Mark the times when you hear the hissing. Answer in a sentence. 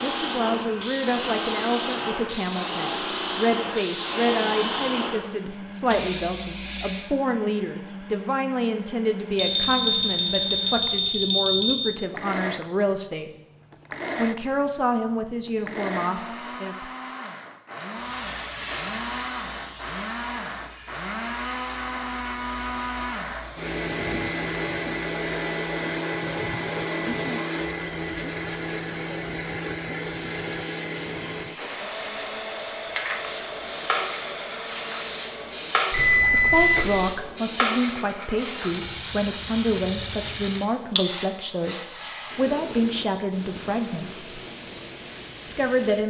The hissing can be heard from 0.0 to 7.2 s and from 17.9 to 46.0 s.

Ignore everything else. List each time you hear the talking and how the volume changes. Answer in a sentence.
You can hear the talking from 0.0 to 13.3 s, at a steady volume; briefly from 14.2 to 16.9 s; from 36.3 to 44.4 s, at a steady volume; and briefly from 45.5 to 46.0 s.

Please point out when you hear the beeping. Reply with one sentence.
The beeping can be heard from 9.3 to 11.8 s and from 35.9 to 37.1 s.